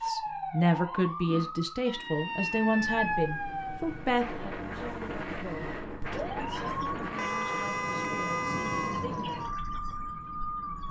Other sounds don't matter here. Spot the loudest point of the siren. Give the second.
3 s.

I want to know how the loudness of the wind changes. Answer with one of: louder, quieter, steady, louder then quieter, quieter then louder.
quieter.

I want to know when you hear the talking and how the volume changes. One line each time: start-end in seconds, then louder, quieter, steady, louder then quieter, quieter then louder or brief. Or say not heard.
0.0-9.3 quieter.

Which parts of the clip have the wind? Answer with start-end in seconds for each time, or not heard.
3.8-10.8.